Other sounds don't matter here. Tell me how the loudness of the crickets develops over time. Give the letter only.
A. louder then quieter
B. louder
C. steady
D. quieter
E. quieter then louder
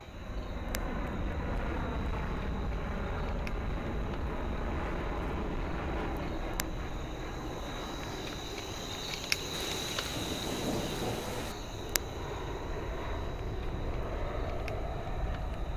A.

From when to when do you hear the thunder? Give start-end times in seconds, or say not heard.
9.6-11.6.